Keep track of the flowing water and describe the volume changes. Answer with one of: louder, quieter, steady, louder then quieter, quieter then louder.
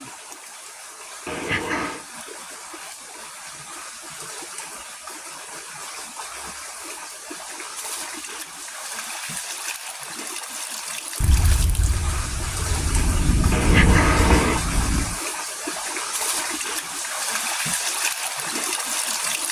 louder.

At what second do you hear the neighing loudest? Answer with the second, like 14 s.
14 s.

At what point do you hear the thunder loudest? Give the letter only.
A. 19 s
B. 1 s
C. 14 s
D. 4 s
C.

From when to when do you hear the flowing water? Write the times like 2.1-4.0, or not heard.
0.0-19.4.